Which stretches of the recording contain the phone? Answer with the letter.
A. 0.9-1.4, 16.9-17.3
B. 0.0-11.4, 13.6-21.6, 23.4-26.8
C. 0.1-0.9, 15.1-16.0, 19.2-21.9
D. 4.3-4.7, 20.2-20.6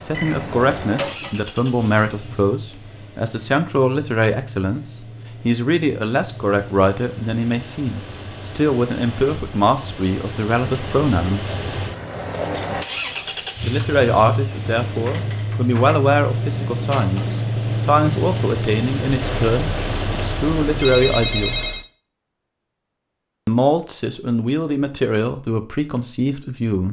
C.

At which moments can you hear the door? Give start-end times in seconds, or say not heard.
0.9-1.4, 16.9-17.3.